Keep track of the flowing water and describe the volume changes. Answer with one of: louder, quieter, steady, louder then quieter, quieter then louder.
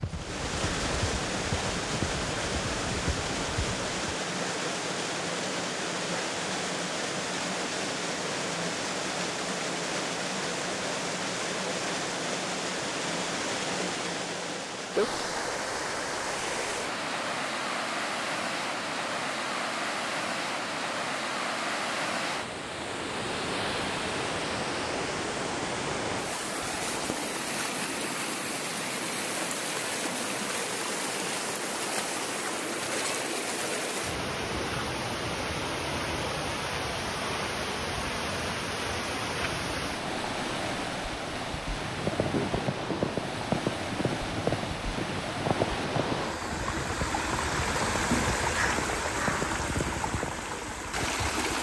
steady.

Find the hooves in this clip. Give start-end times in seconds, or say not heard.
0.0-4.2, 41.8-50.5.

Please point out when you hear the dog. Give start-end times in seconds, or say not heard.
not heard.